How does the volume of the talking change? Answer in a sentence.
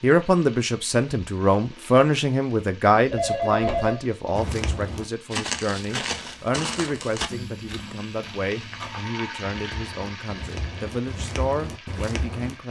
The volume of the talking goes down.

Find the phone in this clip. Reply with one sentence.
You can hear the phone from 3.0 to 4.0 s and from 6.8 to 7.4 s.